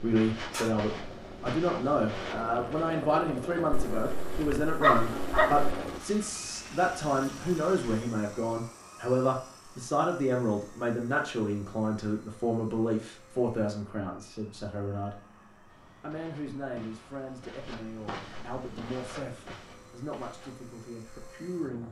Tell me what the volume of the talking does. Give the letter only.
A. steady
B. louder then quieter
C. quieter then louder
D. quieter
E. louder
D.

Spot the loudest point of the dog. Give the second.
5 s.